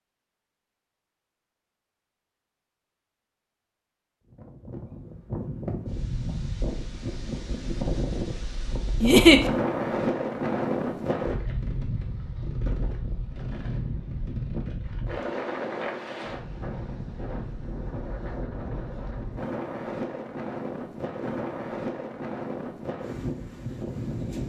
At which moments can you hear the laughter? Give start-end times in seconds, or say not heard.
9.0-9.4.